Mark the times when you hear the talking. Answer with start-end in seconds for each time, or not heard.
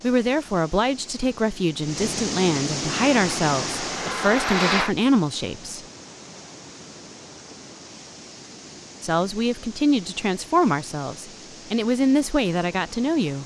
0.0-5.8, 9.0-13.4.